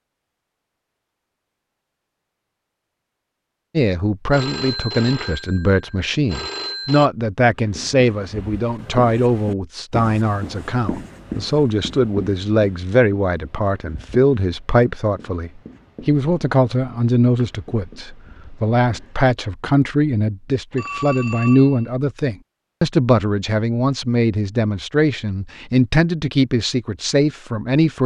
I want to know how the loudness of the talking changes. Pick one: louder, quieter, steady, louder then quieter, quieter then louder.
steady.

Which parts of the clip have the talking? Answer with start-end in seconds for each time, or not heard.
3.8-28.0.